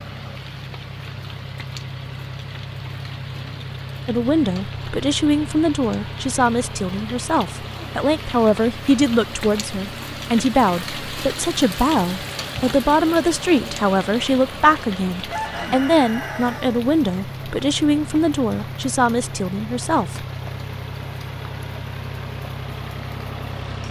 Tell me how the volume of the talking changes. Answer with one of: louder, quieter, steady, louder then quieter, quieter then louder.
steady.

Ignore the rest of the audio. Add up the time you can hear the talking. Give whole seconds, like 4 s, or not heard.
16 s.